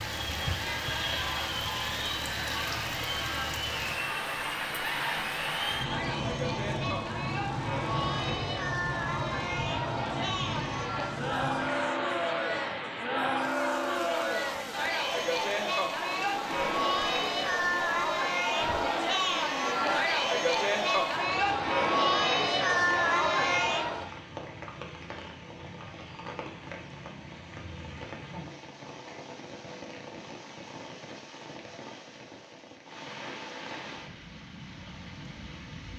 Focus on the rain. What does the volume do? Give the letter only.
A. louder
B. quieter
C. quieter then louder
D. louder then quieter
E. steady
B.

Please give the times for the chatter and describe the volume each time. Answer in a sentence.
The chatter can be heard from 0.0 to 24.1 s, getting louder.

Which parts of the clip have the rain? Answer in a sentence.
The rain can be heard from 0.0 to 35.9 s.